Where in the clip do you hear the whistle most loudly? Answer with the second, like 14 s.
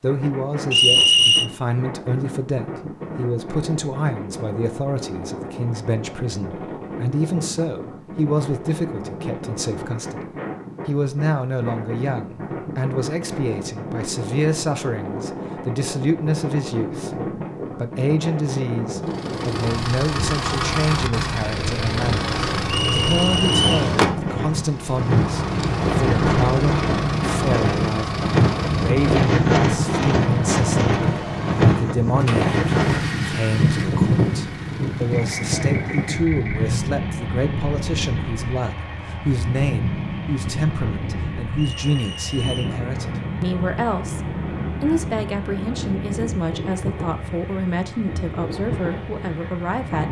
1 s.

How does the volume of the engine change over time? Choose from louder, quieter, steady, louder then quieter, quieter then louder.
quieter.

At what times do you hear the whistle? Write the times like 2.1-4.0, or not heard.
0.7-1.5, 22.7-23.9, 41.5-42.8.